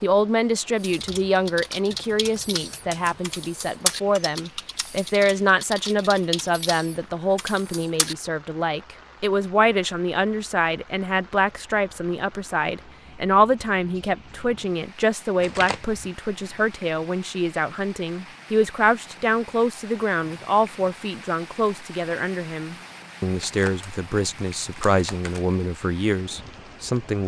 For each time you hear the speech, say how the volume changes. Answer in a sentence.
You can hear the speech from 0.0 to 27.2 s, at a steady volume.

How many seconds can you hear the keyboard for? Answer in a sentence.
The keyboard can be heard for 7 seconds in total.